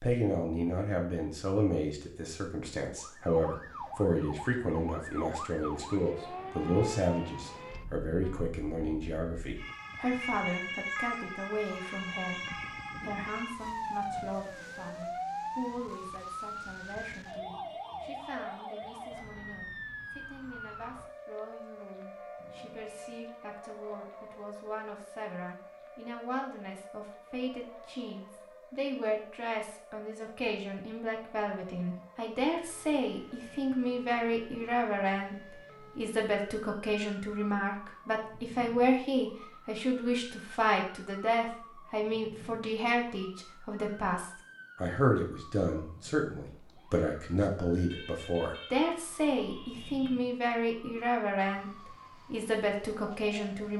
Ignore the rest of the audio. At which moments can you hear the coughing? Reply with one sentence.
The coughing can't be heard in this clip.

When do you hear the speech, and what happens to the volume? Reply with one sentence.
You can hear the speech from 0.0 to 53.7 s, getting quieter then louder.